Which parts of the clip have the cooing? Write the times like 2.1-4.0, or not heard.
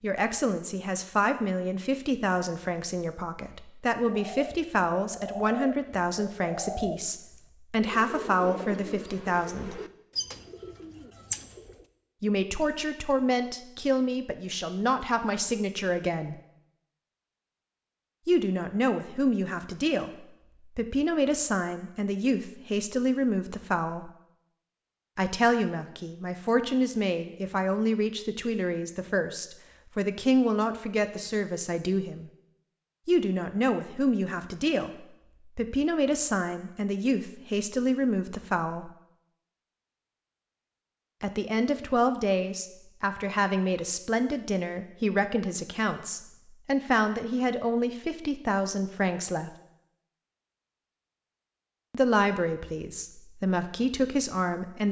4.0-11.8.